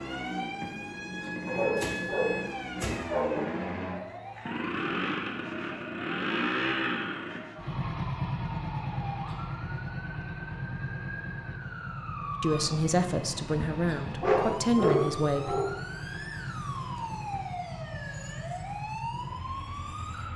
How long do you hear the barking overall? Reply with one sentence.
You can hear the barking for 4 seconds altogether.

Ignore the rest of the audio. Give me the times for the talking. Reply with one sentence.
You can hear the talking from 12.4 to 15.7 s.